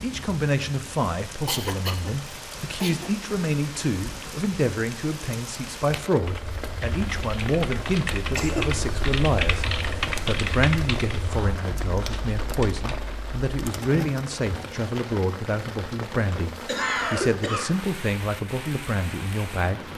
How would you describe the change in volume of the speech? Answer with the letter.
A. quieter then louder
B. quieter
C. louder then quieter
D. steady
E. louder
D.